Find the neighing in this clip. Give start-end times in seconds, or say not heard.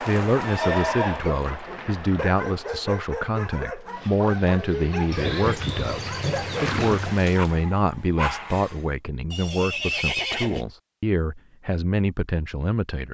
0.4-1.2, 5.1-7.2, 9.3-10.7.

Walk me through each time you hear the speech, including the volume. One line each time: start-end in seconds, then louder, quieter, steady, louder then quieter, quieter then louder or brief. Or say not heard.
0.0-13.1 steady.